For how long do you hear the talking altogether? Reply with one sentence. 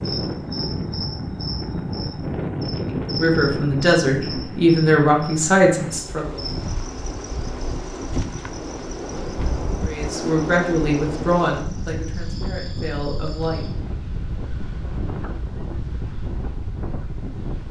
You can hear the talking for 7 seconds altogether.